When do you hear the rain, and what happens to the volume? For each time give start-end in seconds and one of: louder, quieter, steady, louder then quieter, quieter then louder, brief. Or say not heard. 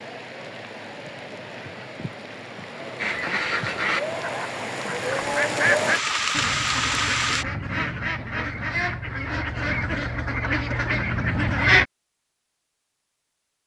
0.0-7.5 louder.